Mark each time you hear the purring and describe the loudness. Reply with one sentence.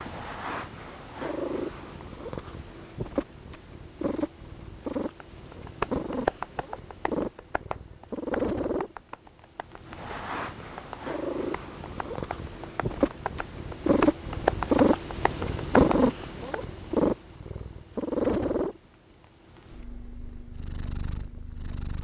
You can hear the purring from 0.0 to 21.9 s, getting louder then quieter.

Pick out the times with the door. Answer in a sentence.
The door can't be heard in this clip.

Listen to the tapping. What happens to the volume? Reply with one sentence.
The volume of the tapping goes down, then up.